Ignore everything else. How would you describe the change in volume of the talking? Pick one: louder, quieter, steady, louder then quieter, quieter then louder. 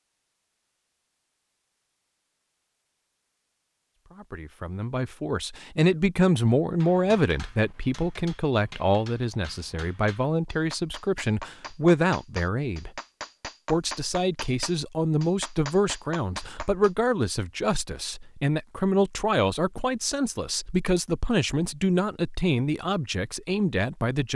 steady.